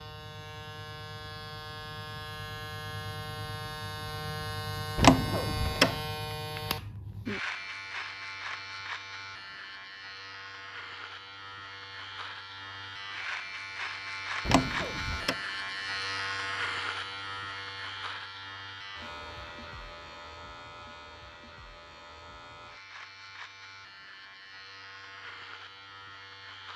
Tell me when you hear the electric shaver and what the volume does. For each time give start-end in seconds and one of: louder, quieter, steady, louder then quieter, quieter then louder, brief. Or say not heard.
0.0-26.7 quieter.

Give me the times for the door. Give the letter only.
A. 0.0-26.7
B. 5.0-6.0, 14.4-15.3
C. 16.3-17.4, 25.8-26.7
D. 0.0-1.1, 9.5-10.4
B.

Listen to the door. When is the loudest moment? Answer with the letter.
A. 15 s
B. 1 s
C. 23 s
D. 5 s
D.